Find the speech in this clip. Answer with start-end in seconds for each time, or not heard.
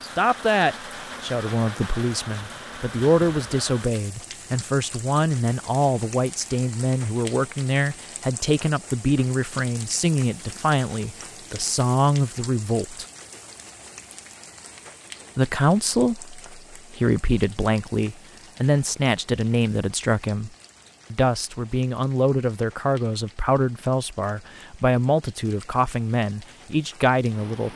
0.0-13.1, 15.3-20.5, 21.1-27.7.